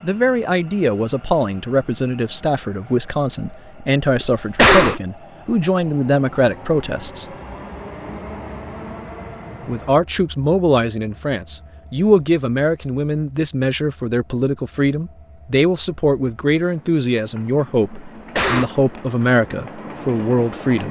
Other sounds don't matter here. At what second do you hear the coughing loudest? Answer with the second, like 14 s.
5 s.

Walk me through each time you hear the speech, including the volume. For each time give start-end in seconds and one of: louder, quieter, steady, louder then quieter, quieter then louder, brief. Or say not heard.
0.0-7.3 steady
9.7-20.8 steady.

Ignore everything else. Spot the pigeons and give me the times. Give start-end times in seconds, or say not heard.
not heard.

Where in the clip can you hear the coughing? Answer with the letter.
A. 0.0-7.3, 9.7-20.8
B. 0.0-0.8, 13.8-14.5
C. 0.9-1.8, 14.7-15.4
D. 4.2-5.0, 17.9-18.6
D.